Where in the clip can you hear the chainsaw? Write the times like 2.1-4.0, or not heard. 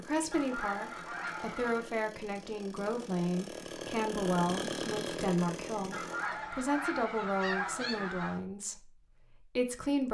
0.0-6.5.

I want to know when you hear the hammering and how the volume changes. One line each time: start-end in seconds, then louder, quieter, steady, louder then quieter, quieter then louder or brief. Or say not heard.
not heard.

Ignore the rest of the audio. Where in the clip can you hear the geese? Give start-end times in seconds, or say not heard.
0.3-1.9, 5.9-8.4.